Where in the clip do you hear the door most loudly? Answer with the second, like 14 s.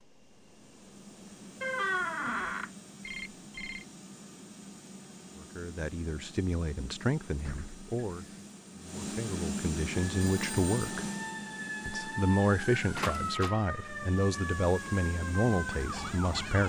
2 s.